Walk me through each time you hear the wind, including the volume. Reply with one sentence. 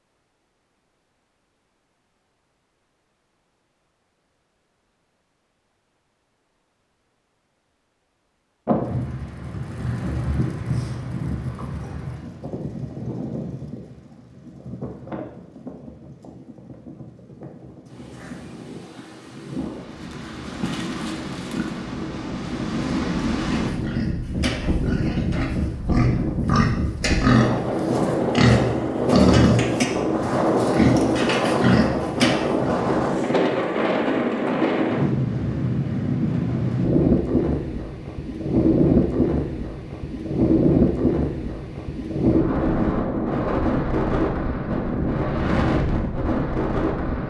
The wind can be heard from 8.7 to 47.2 s, getting louder.